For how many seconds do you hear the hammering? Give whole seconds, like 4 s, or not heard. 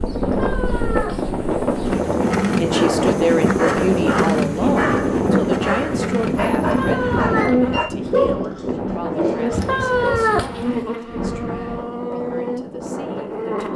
not heard.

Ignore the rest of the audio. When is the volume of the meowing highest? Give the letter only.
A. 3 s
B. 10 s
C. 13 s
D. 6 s
B.